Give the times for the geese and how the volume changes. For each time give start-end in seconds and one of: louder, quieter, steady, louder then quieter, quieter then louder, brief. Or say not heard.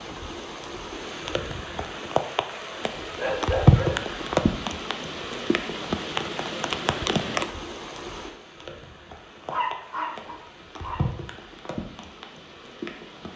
not heard.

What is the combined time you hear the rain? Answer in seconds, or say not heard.
13 s.